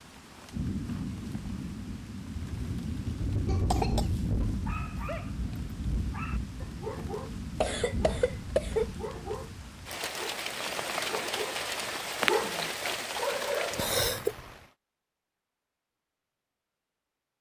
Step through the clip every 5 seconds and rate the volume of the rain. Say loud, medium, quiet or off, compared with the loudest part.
loud, medium, loud, off.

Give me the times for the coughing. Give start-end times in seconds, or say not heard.
3.5-4.0, 7.6-8.9, 13.8-14.3.